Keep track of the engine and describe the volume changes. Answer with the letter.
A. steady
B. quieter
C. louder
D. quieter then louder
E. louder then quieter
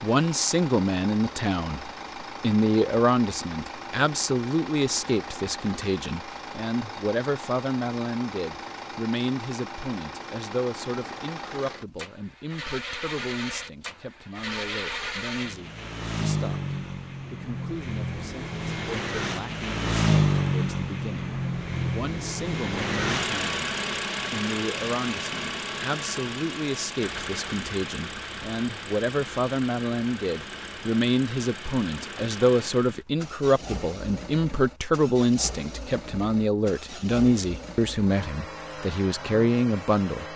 E.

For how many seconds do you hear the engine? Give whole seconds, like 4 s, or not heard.
40 s.